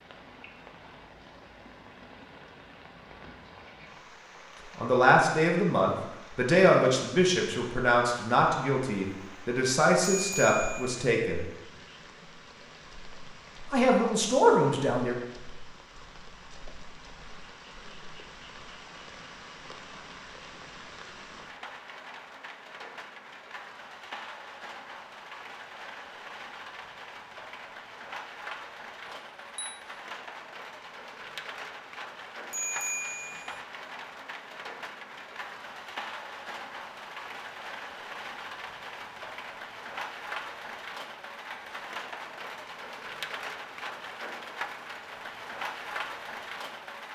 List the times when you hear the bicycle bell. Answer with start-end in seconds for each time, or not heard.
10.0-10.8, 29.1-29.8, 32.5-33.6.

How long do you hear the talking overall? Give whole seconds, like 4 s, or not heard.
8 s.